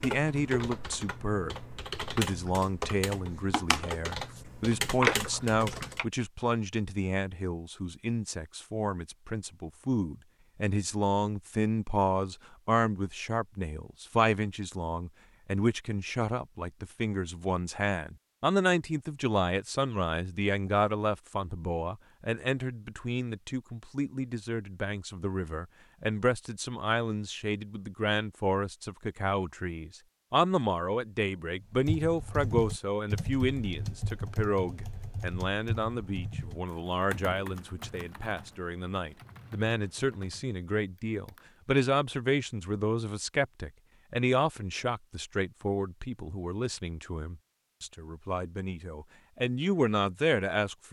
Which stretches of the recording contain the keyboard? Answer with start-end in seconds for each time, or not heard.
0.0-6.0, 31.8-41.6.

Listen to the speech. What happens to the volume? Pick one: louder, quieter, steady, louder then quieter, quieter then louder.
steady.